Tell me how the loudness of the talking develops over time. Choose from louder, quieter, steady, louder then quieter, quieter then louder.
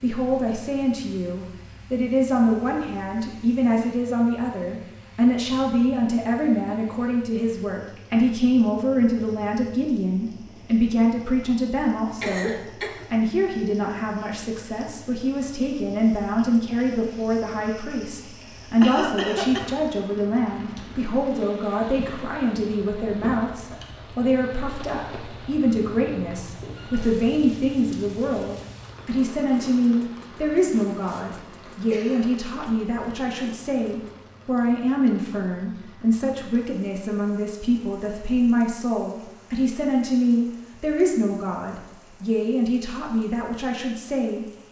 steady.